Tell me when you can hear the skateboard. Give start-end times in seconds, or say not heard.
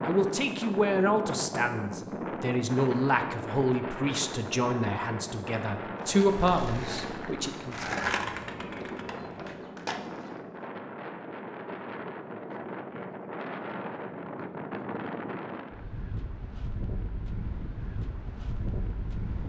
6.0-10.4.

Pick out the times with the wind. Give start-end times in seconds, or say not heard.
0.0-19.4.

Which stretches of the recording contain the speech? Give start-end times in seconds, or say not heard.
0.0-7.9.